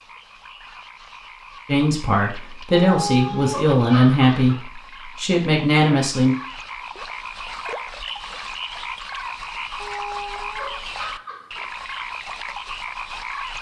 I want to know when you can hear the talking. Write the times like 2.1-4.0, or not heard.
1.6-6.3.